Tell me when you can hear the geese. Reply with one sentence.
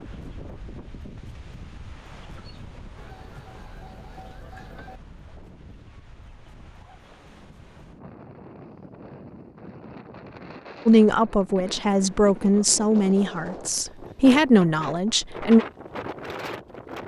You can hear the geese from 3.0 to 5.0 s.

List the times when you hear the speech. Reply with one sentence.
The speech can be heard from 10.8 to 15.7 s.